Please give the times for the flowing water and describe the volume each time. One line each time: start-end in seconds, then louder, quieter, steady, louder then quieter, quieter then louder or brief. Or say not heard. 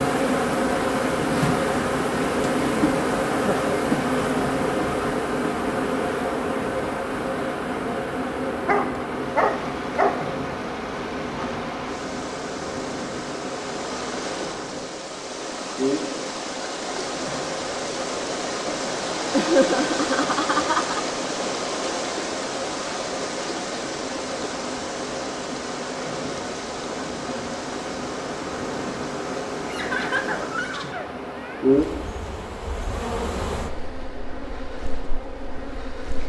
9.2-36.2 louder then quieter.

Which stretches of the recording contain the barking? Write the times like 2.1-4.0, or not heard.
8.7-10.2.